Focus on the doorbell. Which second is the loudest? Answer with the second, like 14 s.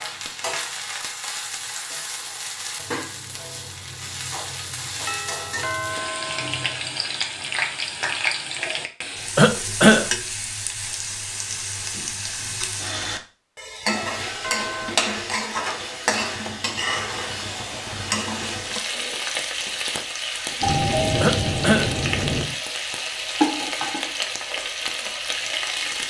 21 s.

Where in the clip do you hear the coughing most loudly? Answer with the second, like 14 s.
10 s.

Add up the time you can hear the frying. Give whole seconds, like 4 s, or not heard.
26 s.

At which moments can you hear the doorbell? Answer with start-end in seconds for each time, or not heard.
5.0-6.8, 13.8-14.9, 20.6-22.6.